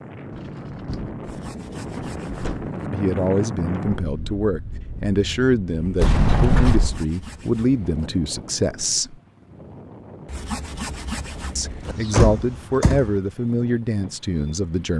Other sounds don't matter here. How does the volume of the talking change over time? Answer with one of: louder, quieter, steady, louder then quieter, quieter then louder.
steady.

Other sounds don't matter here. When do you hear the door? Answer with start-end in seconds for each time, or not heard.
0.3-2.7, 6.0-7.0, 11.8-13.2.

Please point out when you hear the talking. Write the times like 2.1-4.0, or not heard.
2.9-9.2, 11.6-14.9.